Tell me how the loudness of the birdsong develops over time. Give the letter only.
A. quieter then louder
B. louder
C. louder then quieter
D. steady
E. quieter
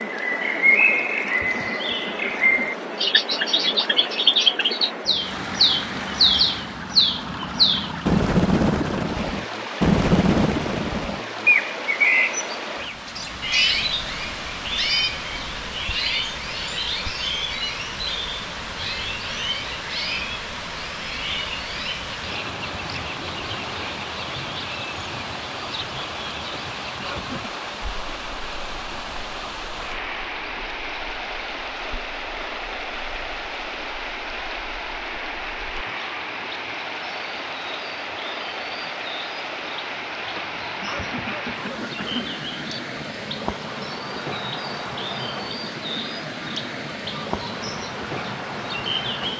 A.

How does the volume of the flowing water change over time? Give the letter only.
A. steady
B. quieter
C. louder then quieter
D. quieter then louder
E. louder
A.